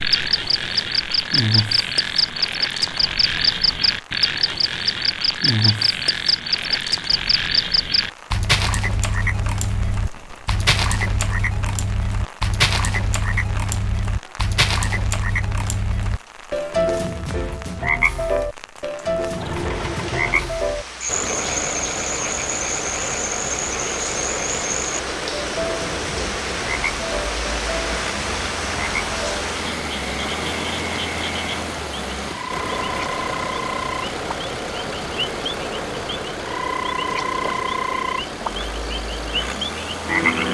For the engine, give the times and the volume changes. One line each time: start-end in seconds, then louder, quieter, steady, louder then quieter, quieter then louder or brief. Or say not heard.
19.3-40.4 steady.